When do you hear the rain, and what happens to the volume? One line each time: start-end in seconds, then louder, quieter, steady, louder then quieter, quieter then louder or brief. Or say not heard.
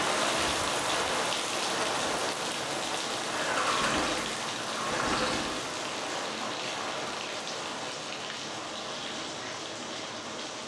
0.0-10.6 quieter.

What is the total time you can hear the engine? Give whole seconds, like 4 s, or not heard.
2 s.